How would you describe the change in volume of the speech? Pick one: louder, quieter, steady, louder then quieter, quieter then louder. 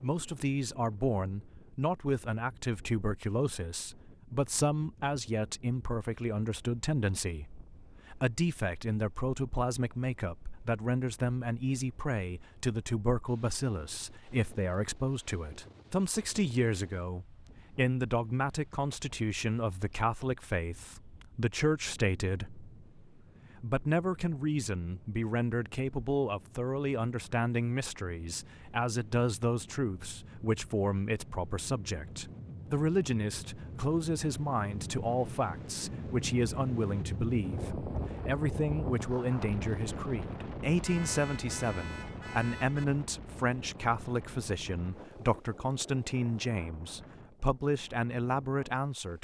steady.